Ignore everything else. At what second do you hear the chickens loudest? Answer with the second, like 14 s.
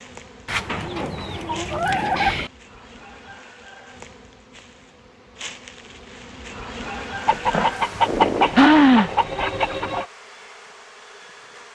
9 s.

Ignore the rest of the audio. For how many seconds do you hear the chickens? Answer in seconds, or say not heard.
5 s.